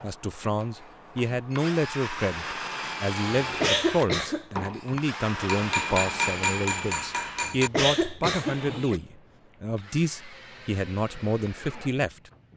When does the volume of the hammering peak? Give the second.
6 s.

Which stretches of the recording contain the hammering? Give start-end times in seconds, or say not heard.
5.5-7.7.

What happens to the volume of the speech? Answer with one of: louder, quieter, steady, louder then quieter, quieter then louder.
steady.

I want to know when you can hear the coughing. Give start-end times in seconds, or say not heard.
3.4-4.5, 7.5-9.0.